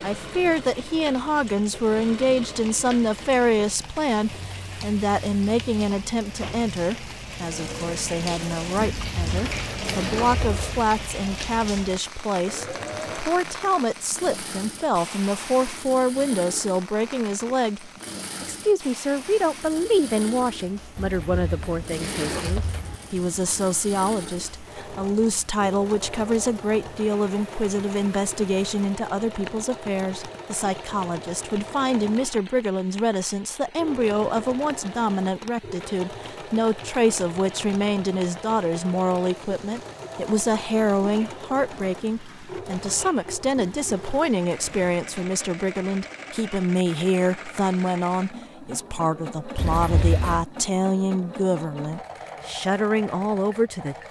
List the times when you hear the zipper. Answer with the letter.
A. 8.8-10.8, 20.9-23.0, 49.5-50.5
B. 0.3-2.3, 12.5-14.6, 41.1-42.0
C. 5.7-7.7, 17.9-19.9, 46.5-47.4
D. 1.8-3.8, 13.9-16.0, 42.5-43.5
A.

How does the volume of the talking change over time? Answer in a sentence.
The volume of the talking stays about the same.